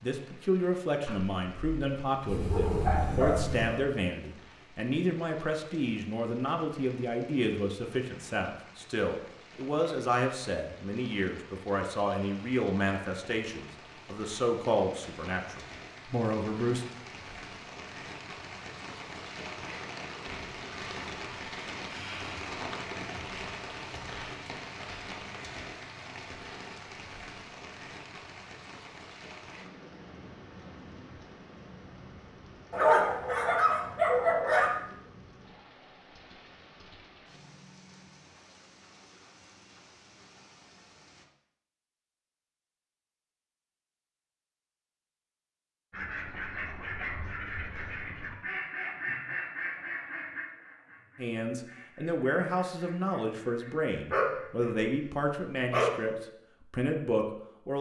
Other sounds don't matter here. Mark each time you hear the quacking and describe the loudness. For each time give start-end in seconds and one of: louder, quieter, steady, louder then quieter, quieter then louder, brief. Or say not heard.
45.9-54.8 quieter.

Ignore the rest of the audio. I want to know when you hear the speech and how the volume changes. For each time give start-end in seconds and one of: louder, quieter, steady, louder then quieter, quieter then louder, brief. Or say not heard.
0.0-16.9 steady
51.1-57.7 steady.